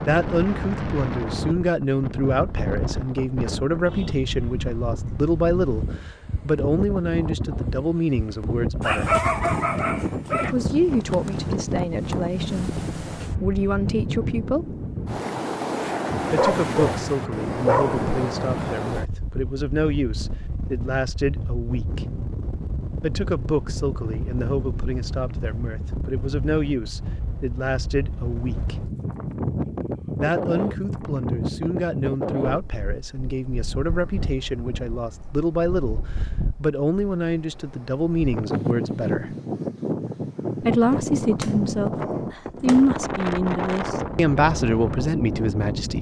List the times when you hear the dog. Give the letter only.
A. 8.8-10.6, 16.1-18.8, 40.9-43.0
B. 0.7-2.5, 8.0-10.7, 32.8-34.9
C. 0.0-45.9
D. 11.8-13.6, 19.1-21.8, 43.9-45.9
A.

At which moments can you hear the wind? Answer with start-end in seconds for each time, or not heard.
0.0-45.9.